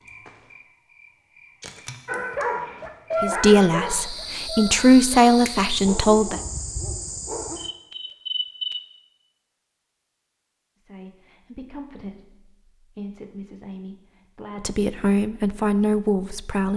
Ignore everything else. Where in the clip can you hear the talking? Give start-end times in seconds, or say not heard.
3.2-6.4, 10.8-16.7.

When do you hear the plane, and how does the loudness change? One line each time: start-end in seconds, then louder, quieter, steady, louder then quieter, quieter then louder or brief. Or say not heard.
not heard.